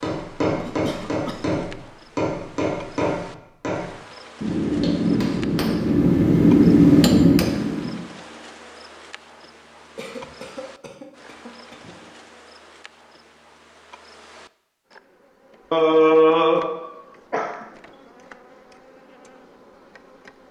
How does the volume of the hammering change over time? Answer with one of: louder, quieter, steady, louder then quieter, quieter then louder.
louder.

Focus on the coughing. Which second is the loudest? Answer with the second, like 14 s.
16 s.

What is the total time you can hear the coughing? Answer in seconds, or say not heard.
5 s.